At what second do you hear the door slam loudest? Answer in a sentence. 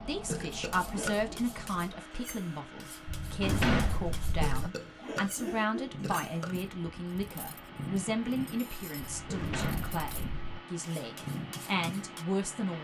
The loudest moment of the door slam is at 4 seconds.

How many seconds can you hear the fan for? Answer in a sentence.
The fan can be heard for 13 seconds in total.